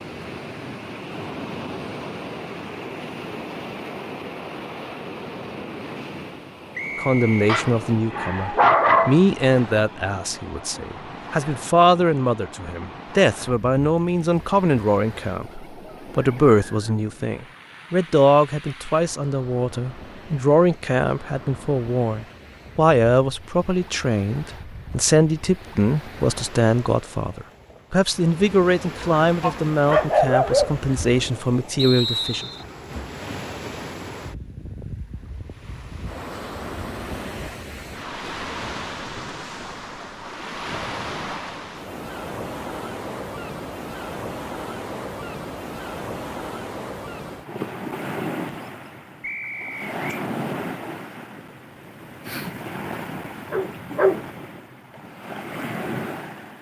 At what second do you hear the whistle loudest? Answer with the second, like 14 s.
32 s.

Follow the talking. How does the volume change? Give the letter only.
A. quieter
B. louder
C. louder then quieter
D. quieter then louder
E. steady
E.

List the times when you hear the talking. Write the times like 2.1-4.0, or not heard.
7.0-32.5.